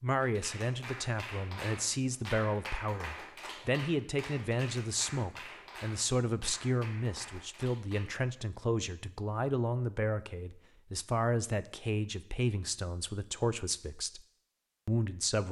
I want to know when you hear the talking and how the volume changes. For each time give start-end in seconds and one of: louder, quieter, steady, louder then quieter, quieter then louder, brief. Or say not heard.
0.0-14.2 steady
14.8-15.4 brief.